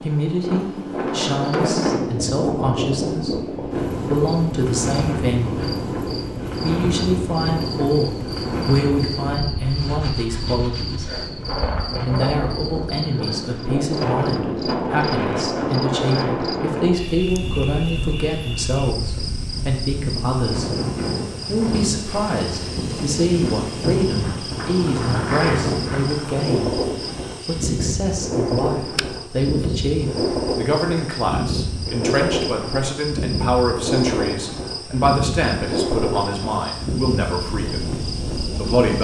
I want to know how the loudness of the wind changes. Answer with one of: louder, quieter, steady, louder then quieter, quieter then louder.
steady.